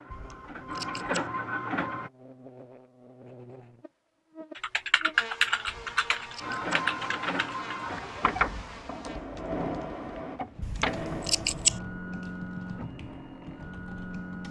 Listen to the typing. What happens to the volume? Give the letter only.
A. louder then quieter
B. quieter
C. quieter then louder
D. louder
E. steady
B.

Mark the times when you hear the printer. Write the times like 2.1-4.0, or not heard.
0.0-2.1, 6.4-14.4.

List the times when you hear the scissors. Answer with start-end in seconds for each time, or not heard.
0.1-1.2, 5.7-6.8, 10.6-11.8.